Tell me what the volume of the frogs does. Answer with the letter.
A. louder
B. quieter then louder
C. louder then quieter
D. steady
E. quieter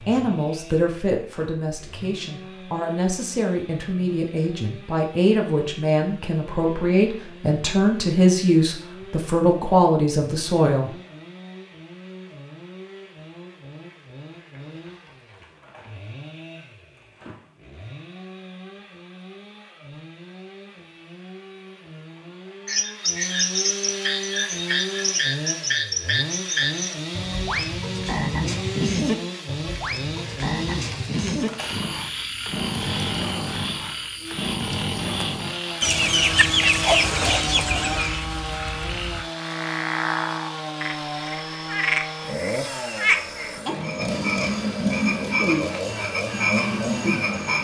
B.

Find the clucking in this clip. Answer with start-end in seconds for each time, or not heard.
35.8-38.2.